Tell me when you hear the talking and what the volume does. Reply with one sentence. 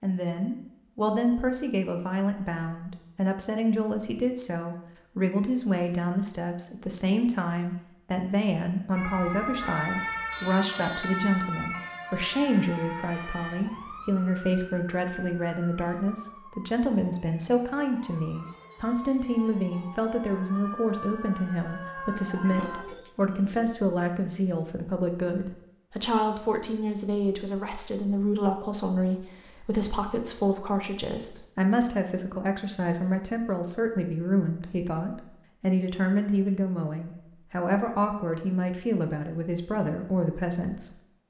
You can hear the talking from 0.0 to 40.9 s, at a steady volume.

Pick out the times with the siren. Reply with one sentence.
The siren can be heard from 8.9 to 22.9 s.